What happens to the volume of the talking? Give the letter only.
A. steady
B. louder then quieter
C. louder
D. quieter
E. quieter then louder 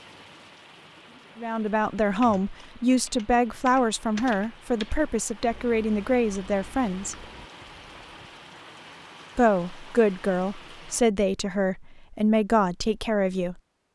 A.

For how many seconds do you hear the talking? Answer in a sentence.
The talking can be heard for 10 seconds in total.